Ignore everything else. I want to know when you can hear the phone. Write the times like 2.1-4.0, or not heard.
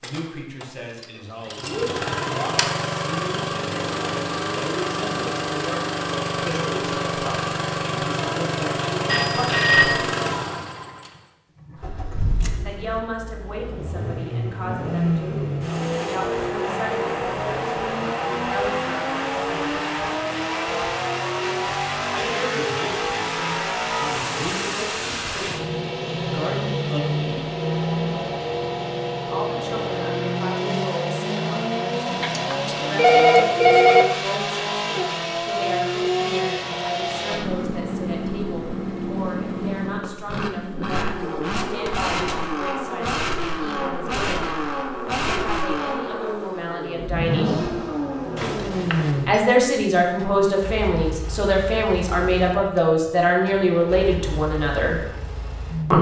9.1-10.0, 32.1-34.0, 48.4-49.4.